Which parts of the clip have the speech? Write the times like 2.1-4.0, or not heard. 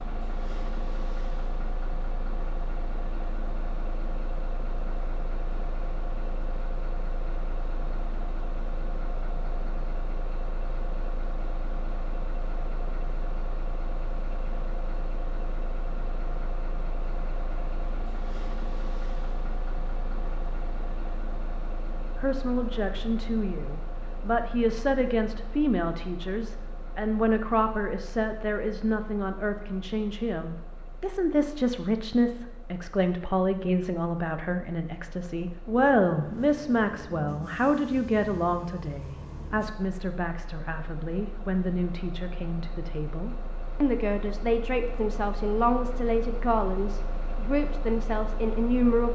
22.1-49.1.